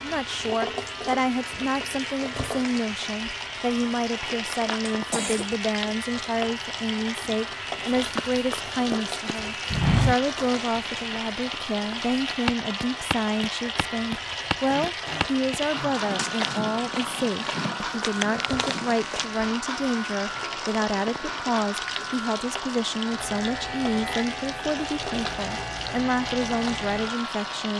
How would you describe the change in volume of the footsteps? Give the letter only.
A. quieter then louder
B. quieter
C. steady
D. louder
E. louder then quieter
B.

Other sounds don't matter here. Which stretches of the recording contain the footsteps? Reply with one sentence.
The footsteps can be heard from 8.0 to 19.2 s.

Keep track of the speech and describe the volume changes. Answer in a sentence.
The loudness of the speech stays about the same.